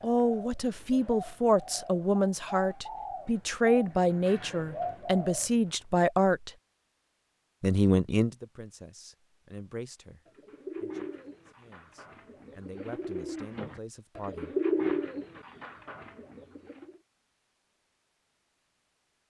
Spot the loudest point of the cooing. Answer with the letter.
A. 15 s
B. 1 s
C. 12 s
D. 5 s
A.